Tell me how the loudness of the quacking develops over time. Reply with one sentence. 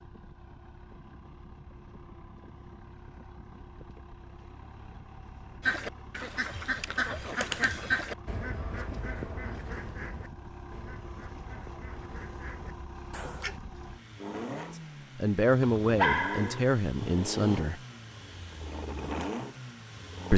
The loudness of the quacking goes down.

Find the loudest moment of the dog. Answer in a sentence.
The loudest moment of the dog is at 16 seconds.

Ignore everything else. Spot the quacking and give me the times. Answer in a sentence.
You can hear the quacking from 5.6 to 13.6 s.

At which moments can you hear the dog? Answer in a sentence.
You can hear the dog from 15.6 to 17.6 s.